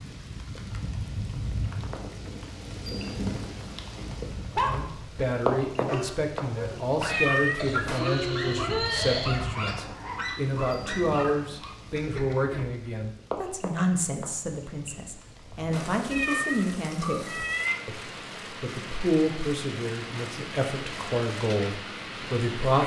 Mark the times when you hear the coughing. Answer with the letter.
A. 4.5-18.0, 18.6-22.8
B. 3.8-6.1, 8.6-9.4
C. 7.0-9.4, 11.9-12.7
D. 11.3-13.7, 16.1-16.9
C.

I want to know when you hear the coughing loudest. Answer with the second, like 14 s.
9 s.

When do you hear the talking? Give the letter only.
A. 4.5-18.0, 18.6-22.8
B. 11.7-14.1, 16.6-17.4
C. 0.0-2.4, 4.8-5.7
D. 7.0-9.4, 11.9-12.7
A.